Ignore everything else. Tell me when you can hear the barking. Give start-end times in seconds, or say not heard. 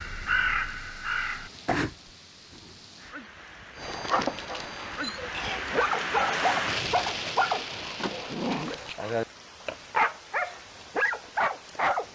3.8-12.0.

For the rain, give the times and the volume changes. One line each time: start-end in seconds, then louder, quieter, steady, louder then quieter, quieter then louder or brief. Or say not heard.
0.0-12.0 louder then quieter.